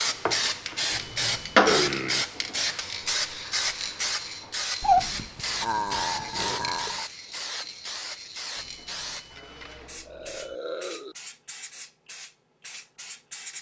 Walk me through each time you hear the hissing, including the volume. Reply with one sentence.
You can hear the hissing from 0.0 to 13.5 s, getting quieter.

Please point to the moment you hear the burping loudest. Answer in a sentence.
The volume of the burping peaks at 5 seconds.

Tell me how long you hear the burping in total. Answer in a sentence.
You can hear the burping for 6 seconds altogether.